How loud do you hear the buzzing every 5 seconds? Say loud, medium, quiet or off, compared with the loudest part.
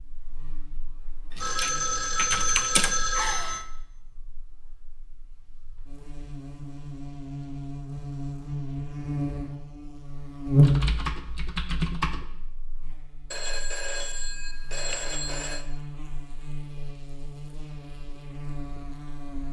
quiet, medium, loud, quiet.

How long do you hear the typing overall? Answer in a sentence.
The typing can be heard for 3 seconds in total.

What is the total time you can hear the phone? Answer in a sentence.
The phone can be heard for 5 seconds in total.